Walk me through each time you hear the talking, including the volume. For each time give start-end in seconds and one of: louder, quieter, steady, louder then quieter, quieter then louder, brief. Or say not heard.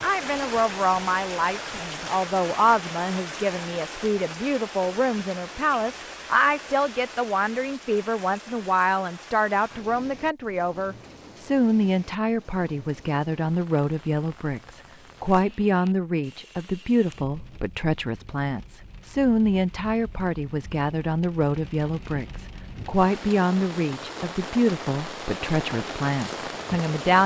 0.0-27.2 steady.